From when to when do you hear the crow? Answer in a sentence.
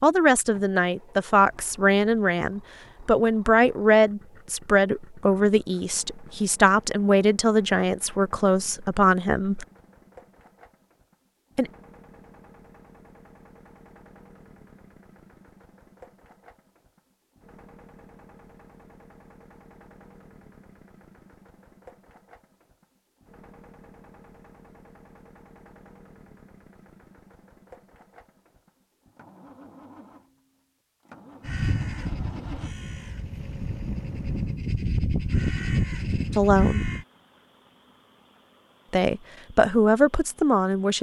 You can hear the crow from 31.4 to 37.0 s.